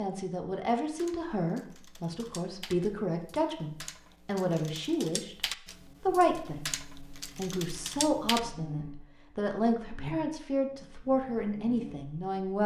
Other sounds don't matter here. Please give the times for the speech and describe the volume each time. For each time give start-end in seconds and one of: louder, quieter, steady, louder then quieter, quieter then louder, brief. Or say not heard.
0.0-12.6 steady.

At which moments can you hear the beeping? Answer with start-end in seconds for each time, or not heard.
not heard.